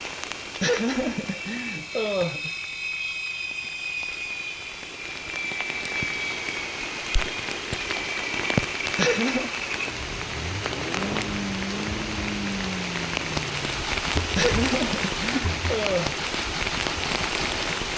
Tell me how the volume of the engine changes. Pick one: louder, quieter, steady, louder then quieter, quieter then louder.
steady.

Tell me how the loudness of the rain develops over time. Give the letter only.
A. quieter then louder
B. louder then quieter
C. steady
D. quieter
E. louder
E.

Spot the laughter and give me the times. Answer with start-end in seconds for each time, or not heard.
0.5-2.5, 8.9-9.5, 14.2-16.2.